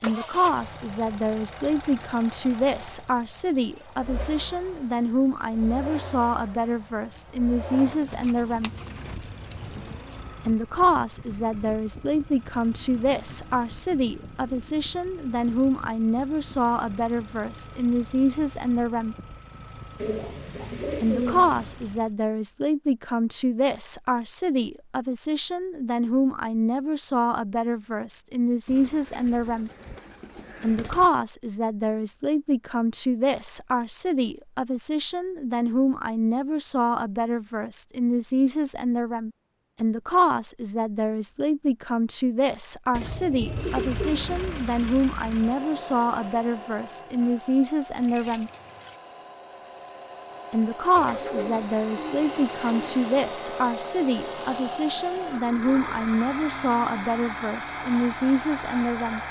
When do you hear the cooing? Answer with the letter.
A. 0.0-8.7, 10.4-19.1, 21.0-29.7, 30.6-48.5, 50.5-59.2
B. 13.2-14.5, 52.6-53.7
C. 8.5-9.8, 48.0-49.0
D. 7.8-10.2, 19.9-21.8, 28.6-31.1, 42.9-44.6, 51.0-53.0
D.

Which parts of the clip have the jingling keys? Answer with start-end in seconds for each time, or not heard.
8.5-9.8, 48.0-49.0.